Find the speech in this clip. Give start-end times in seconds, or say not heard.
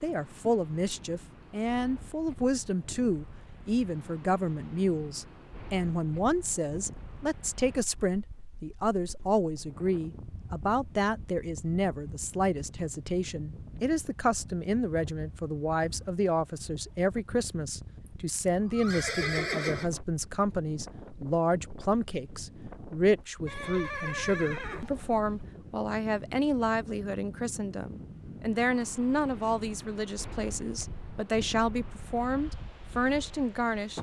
0.0-33.9.